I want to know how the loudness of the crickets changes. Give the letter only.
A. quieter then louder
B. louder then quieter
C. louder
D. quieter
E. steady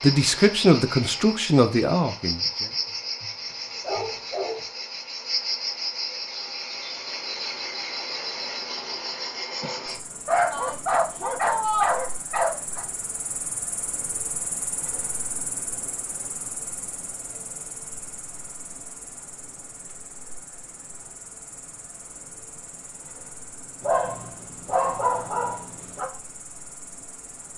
D.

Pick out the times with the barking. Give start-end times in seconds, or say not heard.
2.7-4.7, 10.2-12.8, 23.8-26.1.